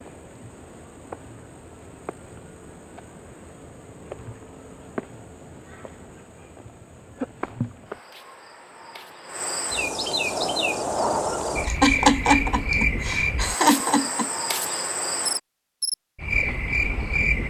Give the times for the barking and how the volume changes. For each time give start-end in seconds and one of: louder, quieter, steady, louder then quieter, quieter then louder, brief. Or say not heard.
not heard.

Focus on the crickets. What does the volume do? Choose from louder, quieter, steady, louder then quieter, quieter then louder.
louder.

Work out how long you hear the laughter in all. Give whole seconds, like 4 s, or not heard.
3 s.